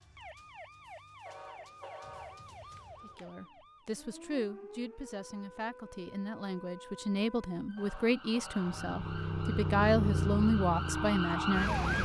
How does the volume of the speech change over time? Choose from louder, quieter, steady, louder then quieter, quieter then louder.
louder.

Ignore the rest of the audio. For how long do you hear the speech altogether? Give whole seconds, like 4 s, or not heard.
9 s.